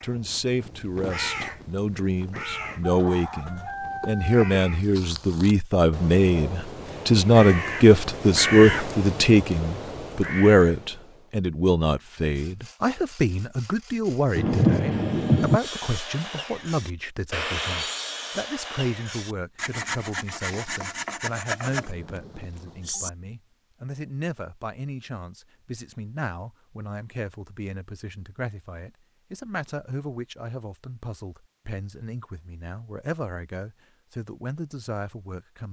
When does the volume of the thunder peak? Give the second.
15 s.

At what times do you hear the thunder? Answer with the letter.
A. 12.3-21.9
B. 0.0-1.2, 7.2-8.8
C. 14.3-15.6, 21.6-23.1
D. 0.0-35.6
C.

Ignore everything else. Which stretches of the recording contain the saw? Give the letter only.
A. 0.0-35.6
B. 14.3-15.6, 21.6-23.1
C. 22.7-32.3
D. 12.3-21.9
D.